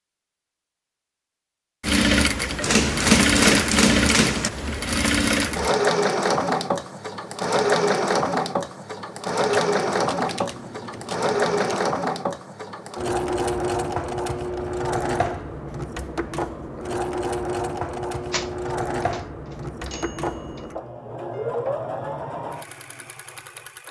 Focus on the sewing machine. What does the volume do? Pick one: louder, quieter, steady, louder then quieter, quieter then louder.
quieter.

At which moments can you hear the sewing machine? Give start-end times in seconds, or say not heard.
1.8-23.8.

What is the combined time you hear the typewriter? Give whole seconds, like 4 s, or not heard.
6 s.